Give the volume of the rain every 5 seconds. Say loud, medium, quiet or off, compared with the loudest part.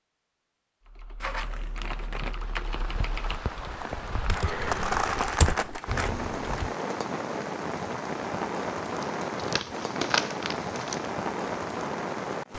medium, loud, loud.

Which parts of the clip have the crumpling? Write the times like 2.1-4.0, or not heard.
1.2-2.4, 4.3-6.1, 9.0-11.0.